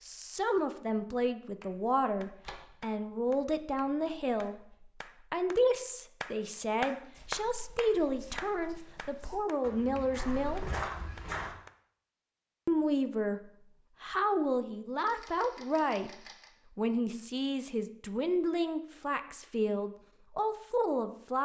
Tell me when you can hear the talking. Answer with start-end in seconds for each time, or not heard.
0.0-10.6, 12.7-16.1, 16.8-21.4.